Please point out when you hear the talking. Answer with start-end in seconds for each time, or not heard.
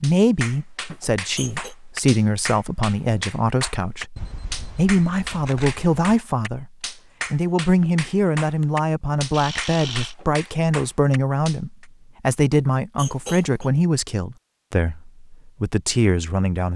0.0-6.7, 7.3-16.7.